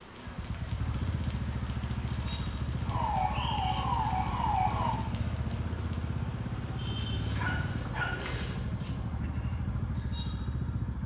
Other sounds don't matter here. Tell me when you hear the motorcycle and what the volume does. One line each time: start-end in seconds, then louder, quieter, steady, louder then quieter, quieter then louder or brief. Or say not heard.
0.0-11.0 steady.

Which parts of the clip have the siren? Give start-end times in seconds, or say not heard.
2.9-5.0.